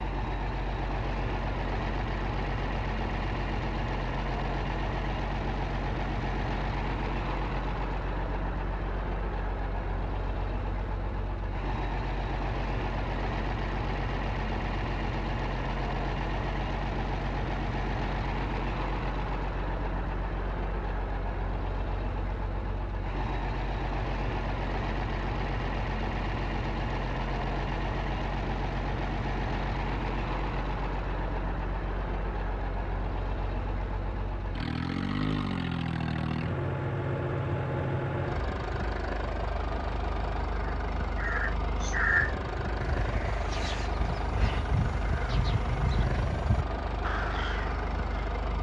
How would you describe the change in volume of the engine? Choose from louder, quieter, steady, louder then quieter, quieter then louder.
steady.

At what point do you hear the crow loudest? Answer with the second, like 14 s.
42 s.